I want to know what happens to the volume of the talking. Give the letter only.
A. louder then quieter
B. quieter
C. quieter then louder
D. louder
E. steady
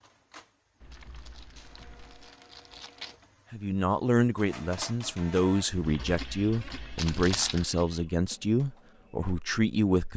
E.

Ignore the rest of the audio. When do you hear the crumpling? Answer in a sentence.
The crumpling can be heard from 0.9 to 3.2 s and from 7.0 to 7.7 s.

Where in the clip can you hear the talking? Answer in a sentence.
The talking can be heard from 3.5 to 10.1 s.